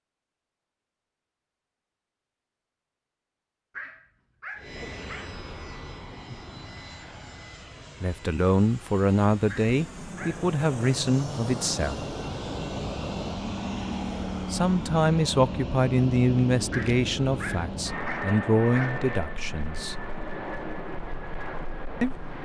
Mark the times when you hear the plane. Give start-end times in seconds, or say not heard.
4.5-22.4.